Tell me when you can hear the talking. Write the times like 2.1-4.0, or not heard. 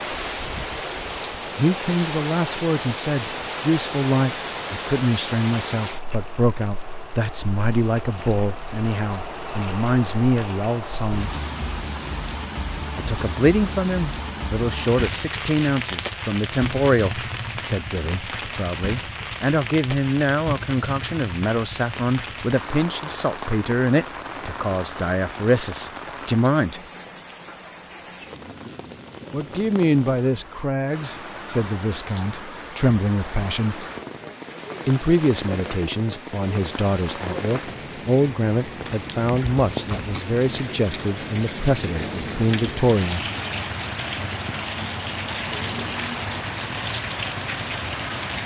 1.6-11.3, 12.9-26.8, 29.3-33.9, 34.9-43.2.